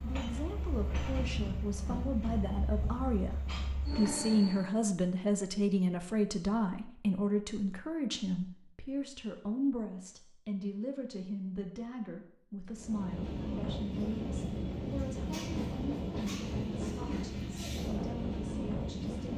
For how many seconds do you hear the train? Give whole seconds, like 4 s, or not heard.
11 s.